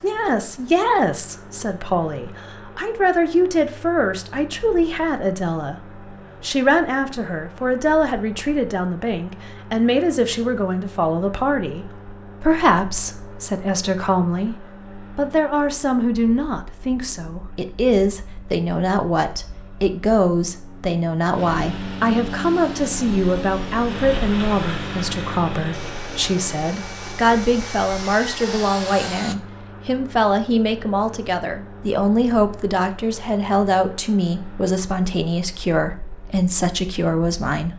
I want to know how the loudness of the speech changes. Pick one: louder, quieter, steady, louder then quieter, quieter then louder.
steady.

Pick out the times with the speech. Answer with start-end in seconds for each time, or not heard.
0.0-37.7.